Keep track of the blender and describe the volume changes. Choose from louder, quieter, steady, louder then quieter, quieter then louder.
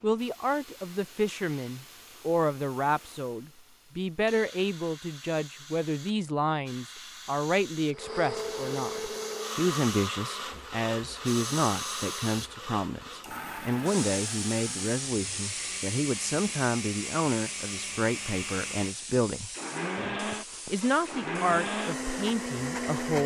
quieter then louder.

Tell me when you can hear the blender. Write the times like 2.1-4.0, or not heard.
7.9-23.2.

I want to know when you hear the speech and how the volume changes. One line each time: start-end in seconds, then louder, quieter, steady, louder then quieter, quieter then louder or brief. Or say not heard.
0.0-23.2 steady.